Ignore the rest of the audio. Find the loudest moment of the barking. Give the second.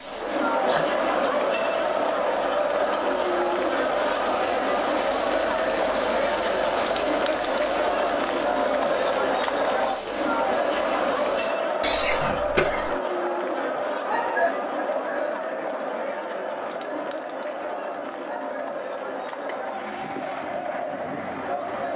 14 s.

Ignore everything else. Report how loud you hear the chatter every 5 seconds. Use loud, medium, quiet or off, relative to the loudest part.
loud, loud, loud, medium, medium.